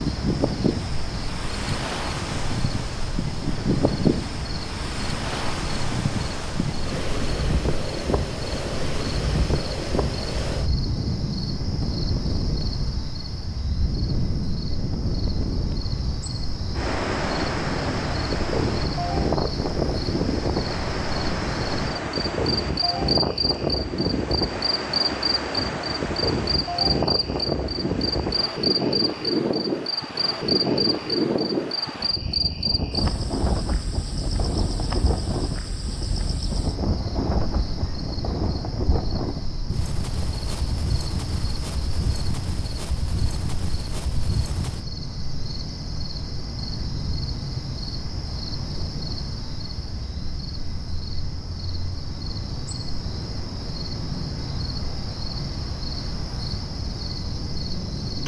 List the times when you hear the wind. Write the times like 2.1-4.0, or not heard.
0.0-44.9.